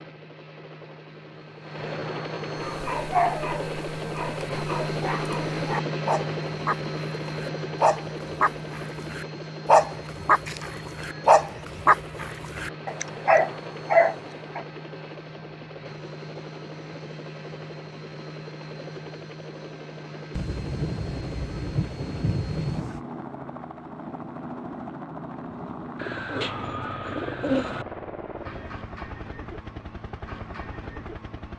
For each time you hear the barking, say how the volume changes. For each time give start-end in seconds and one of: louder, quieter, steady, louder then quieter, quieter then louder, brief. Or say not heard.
2.6-14.6 louder.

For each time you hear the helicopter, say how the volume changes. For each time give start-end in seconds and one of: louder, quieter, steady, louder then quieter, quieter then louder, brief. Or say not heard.
0.0-31.5 quieter.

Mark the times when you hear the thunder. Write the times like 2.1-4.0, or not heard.
20.4-23.0.